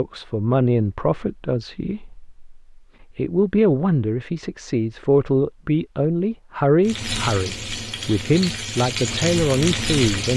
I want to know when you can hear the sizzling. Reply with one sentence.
The sizzling can be heard from 6.8 to 10.3 s.